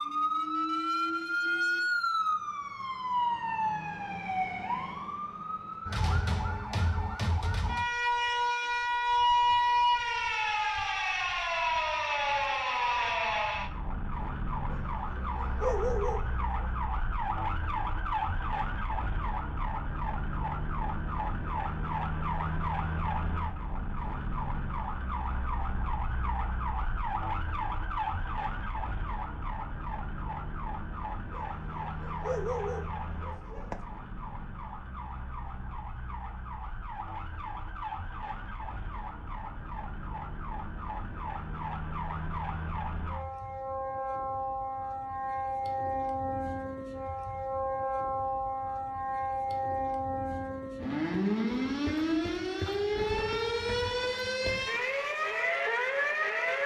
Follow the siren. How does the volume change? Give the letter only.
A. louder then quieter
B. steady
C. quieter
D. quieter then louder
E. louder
D.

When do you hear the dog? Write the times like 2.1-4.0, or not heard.
14.7-16.7, 31.3-33.8.